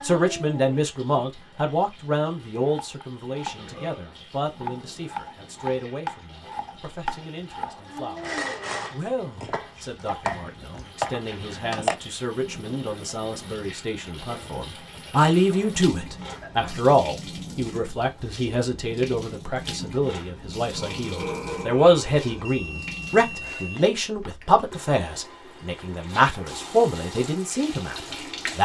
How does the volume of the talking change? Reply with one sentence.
The loudness of the talking goes down, then up.